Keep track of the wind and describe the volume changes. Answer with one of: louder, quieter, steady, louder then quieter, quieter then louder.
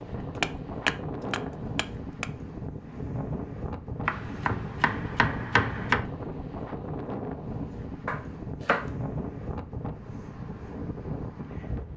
steady.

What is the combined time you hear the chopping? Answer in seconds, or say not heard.
5 s.